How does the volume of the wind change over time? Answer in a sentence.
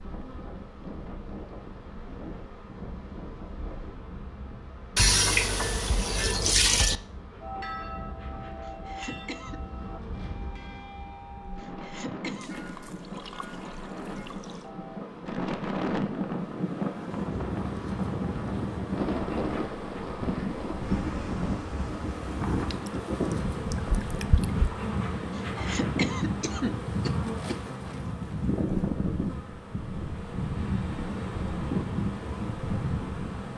The volume of the wind goes up.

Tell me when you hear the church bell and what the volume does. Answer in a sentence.
You can hear the church bell from 7.4 to 15.1 s, getting quieter.